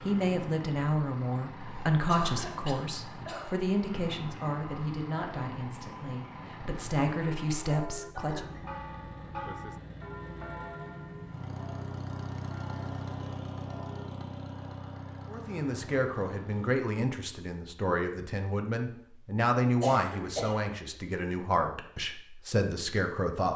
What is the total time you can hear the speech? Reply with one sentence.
The speech can be heard for 17 seconds in total.